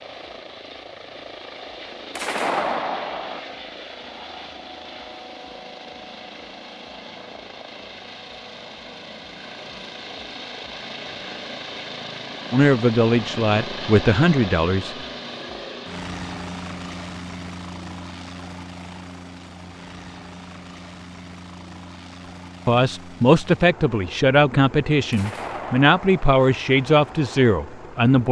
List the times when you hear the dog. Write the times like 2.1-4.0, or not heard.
not heard.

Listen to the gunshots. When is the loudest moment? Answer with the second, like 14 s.
3 s.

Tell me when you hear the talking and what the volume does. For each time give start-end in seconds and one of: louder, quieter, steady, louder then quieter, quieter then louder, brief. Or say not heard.
12.5-14.9 brief
22.6-28.2 steady.